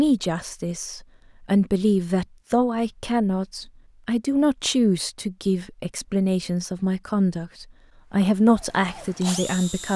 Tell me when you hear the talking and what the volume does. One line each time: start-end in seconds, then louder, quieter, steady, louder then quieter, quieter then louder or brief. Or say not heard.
0.0-9.9 steady.